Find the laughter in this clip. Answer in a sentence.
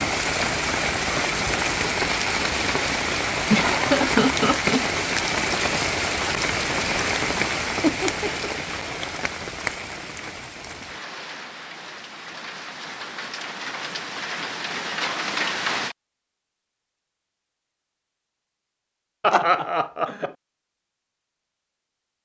You can hear the laughter from 3.5 to 4.8 s, from 7.8 to 8.5 s and from 19.2 to 20.3 s.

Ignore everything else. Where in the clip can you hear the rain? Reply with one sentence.
You can hear the rain from 0.0 to 15.9 s.